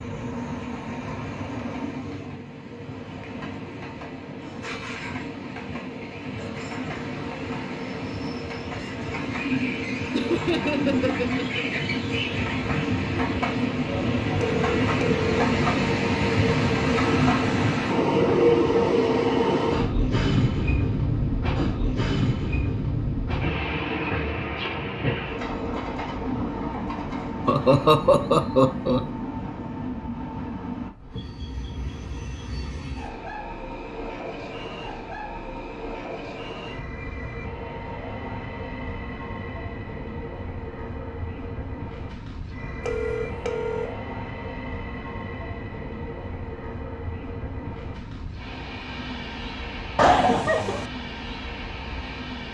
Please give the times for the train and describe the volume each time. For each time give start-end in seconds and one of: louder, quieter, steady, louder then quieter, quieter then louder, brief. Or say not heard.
0.0-52.4 louder then quieter.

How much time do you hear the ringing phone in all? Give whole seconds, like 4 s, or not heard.
2 s.